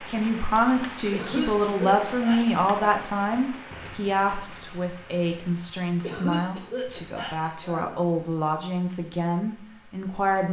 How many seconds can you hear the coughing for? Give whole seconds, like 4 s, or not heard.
4 s.